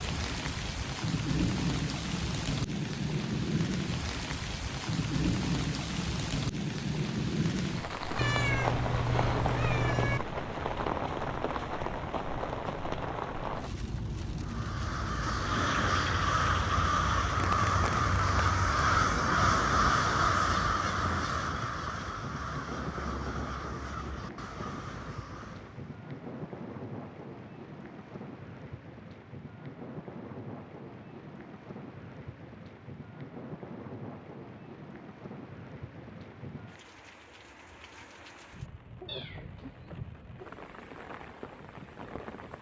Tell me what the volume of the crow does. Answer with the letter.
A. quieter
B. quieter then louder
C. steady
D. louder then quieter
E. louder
A.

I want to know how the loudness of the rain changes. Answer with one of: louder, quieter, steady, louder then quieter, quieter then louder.
quieter.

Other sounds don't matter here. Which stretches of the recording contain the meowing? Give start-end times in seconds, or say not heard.
8.2-10.2, 39.0-40.5.